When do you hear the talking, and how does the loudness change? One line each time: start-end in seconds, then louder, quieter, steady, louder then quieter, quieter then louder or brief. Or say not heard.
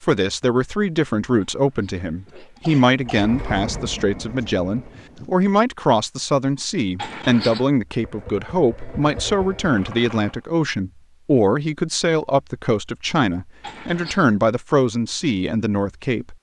0.0-16.3 steady.